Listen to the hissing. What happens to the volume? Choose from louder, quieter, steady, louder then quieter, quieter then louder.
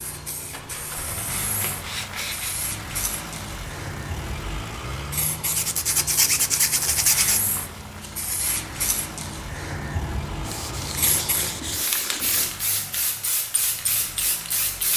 louder.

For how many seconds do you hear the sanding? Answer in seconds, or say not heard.
6 s.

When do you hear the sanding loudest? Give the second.
6 s.